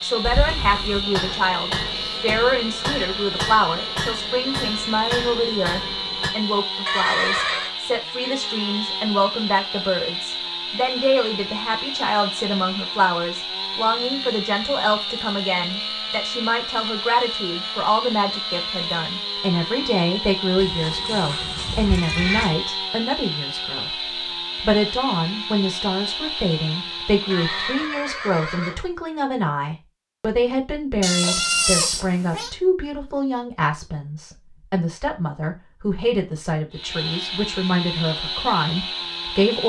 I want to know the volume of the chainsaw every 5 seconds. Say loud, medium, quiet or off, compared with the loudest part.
loud, loud, loud, loud, loud, loud, off, loud.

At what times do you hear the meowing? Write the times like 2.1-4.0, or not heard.
0.2-1.1, 20.6-22.6, 31.0-32.5.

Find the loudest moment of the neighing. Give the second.
7 s.